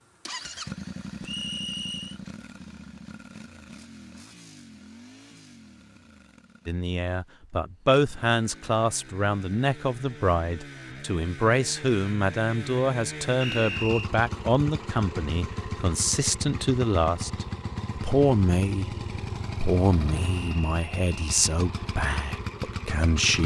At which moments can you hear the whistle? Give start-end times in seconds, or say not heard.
1.2-2.2, 13.4-14.1, 20.2-21.6.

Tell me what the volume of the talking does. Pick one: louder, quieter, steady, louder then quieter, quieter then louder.
steady.